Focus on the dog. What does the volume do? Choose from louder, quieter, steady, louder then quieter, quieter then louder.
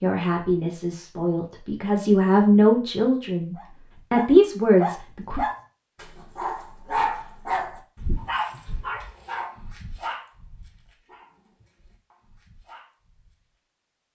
quieter.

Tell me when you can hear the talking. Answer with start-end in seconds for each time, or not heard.
0.0-5.4.